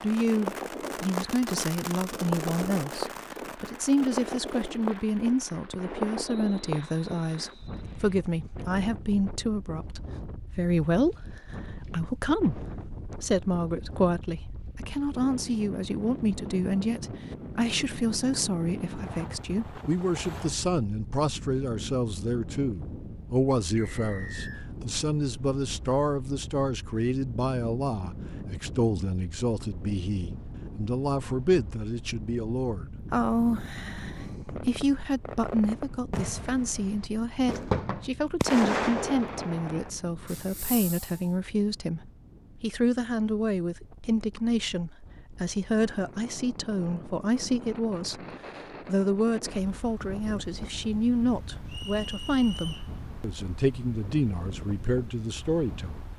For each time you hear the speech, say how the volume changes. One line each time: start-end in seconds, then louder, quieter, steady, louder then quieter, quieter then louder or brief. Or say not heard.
0.0-48.2 steady
48.9-56.0 steady.